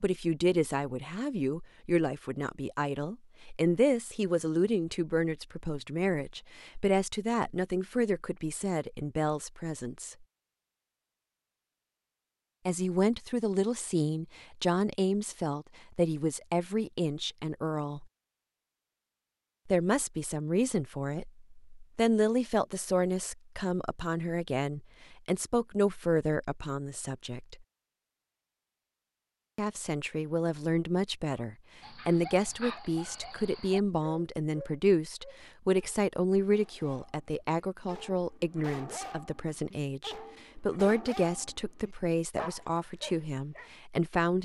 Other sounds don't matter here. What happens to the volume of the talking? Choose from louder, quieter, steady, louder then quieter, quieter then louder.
steady.